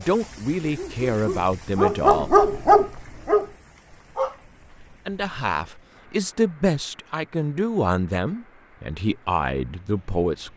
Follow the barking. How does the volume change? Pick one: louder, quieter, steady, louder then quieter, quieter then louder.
louder then quieter.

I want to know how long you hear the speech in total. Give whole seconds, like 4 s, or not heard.
8 s.